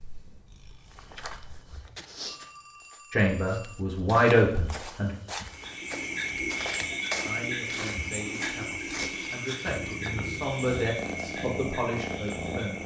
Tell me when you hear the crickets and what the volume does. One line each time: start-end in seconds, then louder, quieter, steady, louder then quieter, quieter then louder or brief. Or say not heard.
5.5-12.8 quieter.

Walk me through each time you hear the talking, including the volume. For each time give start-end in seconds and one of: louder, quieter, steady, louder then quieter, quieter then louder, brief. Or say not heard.
3.1-5.2 brief
7.2-12.8 louder.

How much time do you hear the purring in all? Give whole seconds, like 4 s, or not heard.
5 s.